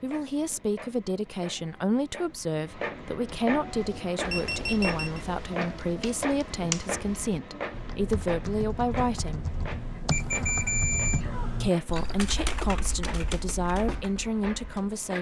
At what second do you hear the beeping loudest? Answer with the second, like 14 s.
11 s.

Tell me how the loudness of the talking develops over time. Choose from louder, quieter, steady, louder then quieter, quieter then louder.
steady.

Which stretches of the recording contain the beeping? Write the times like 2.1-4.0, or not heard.
4.3-5.2, 10.1-11.2.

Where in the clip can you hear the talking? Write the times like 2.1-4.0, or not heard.
0.0-9.5, 11.6-15.1.